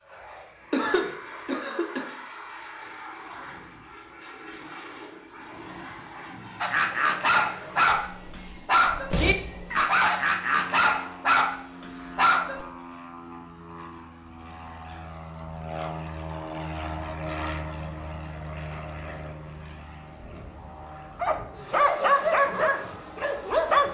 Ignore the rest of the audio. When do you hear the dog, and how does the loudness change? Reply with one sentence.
The dog can be heard from 6.6 to 12.7 s, at a steady volume; and briefly from 21.1 to 23.9 s.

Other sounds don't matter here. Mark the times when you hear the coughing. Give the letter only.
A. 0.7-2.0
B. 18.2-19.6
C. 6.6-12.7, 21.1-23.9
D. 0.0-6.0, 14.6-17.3
A.